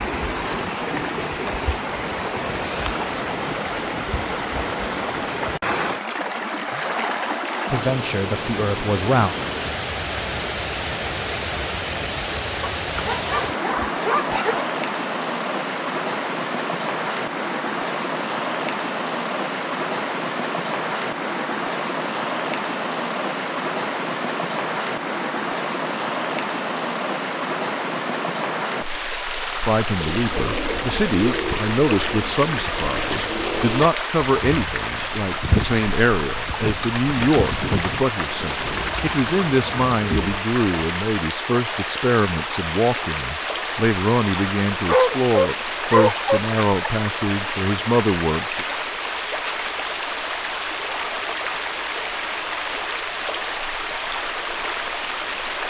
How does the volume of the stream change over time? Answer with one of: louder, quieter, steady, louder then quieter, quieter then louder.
steady.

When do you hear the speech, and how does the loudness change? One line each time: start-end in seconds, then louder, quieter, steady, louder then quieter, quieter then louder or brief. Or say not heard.
7.7-9.3 brief
29.6-48.6 steady.